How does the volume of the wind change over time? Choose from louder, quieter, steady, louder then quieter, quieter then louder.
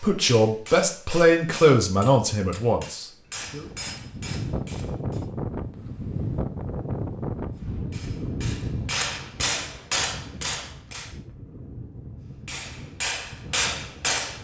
quieter.